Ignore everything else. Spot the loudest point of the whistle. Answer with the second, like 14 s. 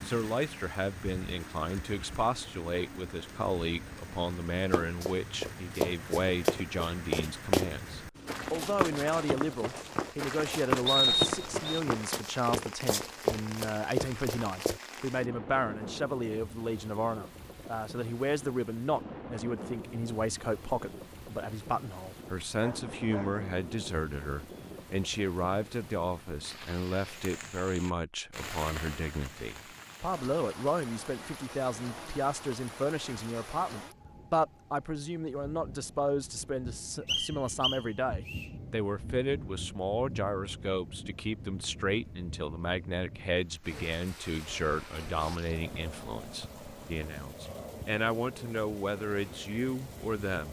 11 s.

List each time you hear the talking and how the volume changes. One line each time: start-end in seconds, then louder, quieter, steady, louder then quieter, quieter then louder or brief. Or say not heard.
0.0-50.4 steady.